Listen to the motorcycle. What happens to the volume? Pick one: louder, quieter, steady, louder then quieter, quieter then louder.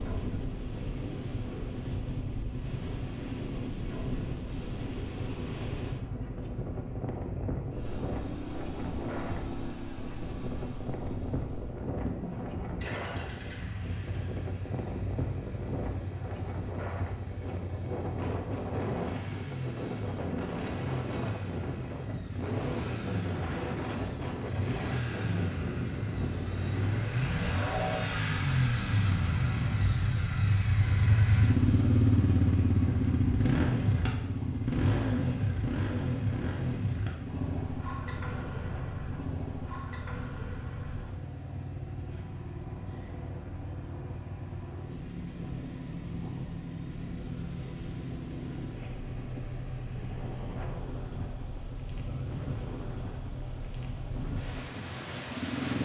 louder then quieter.